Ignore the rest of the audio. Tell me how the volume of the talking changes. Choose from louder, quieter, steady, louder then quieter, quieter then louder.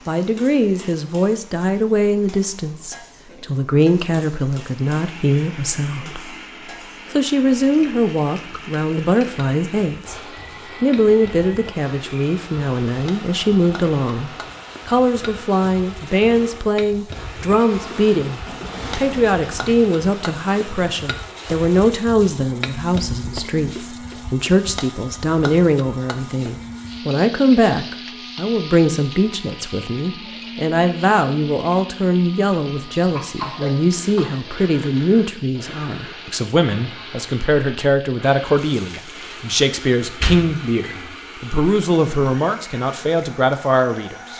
steady.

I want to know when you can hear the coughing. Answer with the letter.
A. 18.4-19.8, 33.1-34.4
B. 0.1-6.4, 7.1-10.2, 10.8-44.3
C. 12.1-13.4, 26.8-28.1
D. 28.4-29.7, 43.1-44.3
A.